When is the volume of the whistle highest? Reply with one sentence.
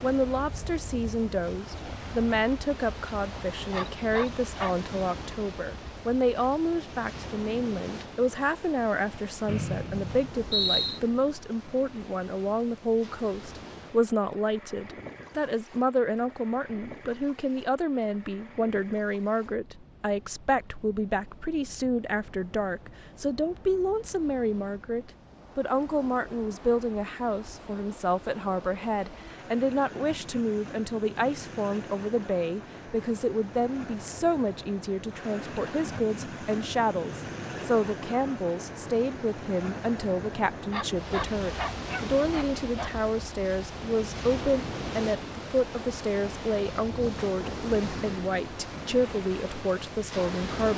The loudest moment of the whistle is at 11 seconds.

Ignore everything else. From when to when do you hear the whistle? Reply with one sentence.
You can hear the whistle from 9.4 to 11.0 s.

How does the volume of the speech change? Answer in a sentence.
The loudness of the speech stays about the same.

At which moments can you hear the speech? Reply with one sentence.
The speech can be heard from 0.0 to 50.7 s.